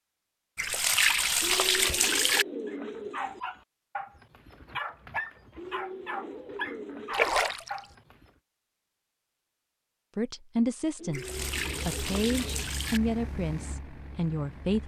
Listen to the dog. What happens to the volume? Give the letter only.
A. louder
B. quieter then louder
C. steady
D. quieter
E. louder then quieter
C.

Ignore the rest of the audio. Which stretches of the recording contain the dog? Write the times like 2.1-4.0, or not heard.
2.6-8.3.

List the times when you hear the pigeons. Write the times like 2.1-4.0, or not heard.
1.4-3.4, 5.5-7.2, 10.9-12.7.